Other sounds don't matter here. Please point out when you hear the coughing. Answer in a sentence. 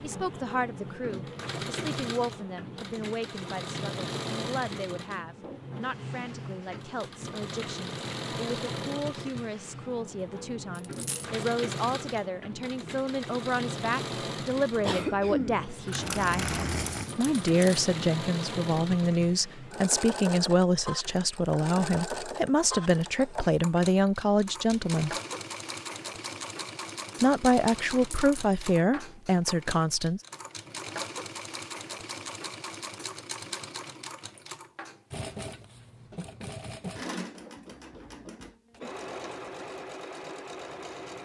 You can hear the coughing from 14.8 to 17.1 s.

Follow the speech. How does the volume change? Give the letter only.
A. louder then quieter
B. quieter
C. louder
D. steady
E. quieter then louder
C.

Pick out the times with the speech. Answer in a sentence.
The speech can be heard from 0.0 to 16.5 s, from 17.1 to 25.1 s and from 27.2 to 30.2 s.